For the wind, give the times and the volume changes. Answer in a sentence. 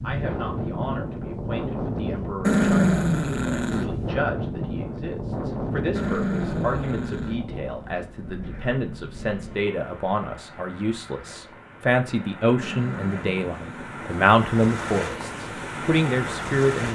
The wind can be heard from 0.0 to 16.9 s, getting quieter then louder.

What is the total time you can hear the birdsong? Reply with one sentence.
The birdsong can't be heard in this clip.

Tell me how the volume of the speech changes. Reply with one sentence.
The loudness of the speech goes up.